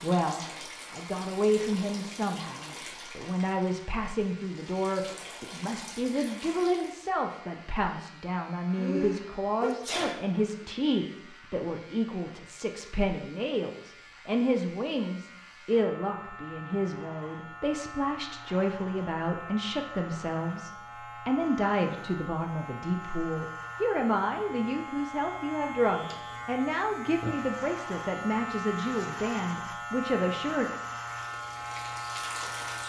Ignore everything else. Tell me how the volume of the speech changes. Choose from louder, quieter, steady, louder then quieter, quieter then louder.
steady.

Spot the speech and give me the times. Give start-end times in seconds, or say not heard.
0.0-30.7.